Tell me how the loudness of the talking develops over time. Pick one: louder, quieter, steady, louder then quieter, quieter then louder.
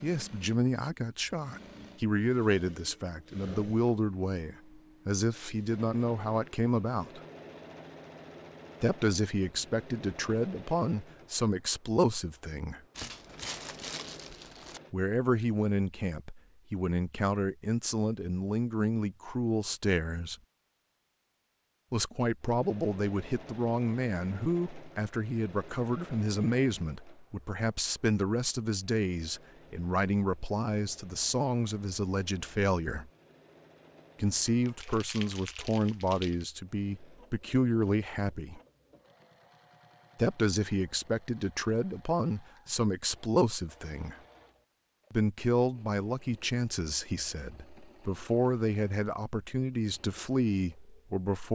steady.